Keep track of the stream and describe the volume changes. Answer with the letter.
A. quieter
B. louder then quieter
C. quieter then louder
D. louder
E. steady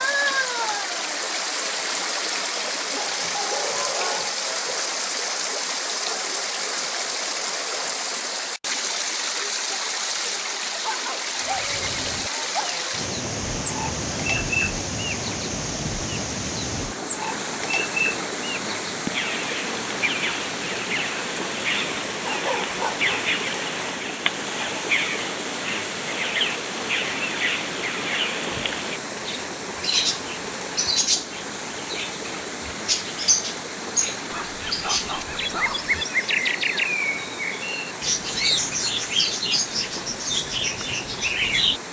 A.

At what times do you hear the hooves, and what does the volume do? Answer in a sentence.
You can't hear the hooves here.